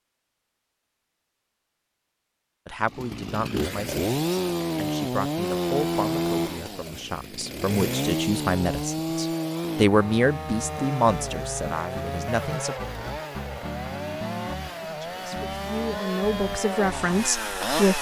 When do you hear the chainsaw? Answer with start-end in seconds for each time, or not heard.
2.9-17.9.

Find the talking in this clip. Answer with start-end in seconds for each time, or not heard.
2.6-12.8, 14.8-17.9.